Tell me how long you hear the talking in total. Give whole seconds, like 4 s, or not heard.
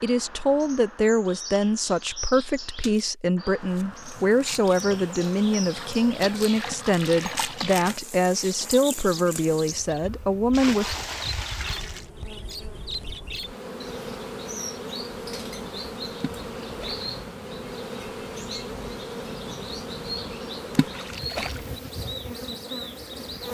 11 s.